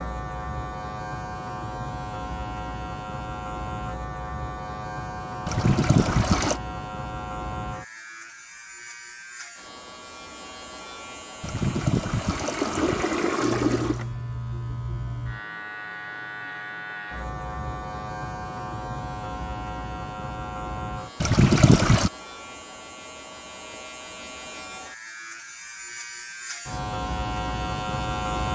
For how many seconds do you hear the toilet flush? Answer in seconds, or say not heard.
5 s.